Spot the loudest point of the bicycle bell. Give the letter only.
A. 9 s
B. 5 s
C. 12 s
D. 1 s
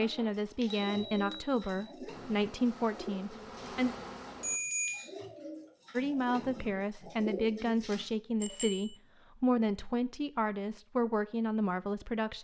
B.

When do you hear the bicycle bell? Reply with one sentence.
You can hear the bicycle bell from 0.1 to 1.9 s, from 4.4 to 5.1 s and from 8.4 to 8.9 s.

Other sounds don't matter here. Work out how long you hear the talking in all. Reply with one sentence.
You can hear the talking for 10 seconds altogether.